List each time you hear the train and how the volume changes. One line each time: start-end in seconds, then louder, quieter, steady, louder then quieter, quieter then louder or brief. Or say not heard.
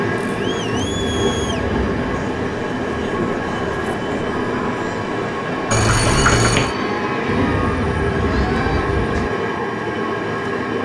0.0-10.8 steady.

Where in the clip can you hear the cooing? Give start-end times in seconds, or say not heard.
0.7-2.0, 7.2-9.3.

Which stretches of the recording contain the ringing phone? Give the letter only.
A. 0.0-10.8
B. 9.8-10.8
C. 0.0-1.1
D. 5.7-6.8
D.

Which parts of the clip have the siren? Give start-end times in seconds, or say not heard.
not heard.